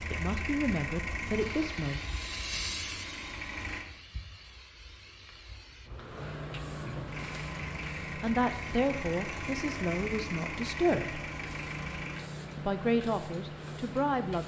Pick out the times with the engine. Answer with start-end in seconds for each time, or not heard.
0.0-3.9, 7.0-12.2.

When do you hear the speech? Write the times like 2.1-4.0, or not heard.
0.1-2.0, 8.2-11.2, 12.6-14.4.